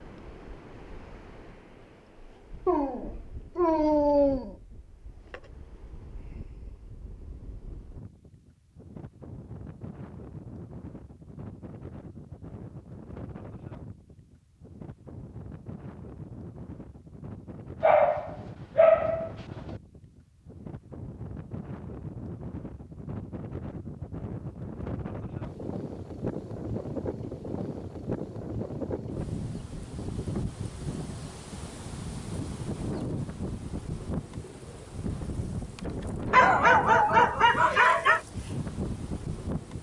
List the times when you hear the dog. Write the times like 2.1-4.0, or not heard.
2.6-4.5, 17.8-19.8, 36.3-38.2.